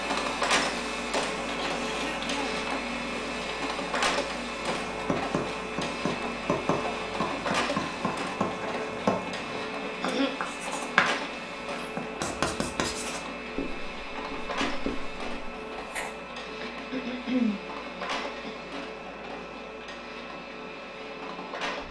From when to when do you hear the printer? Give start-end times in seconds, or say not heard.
0.0-21.8.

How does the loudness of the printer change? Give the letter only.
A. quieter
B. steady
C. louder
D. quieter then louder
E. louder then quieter
A.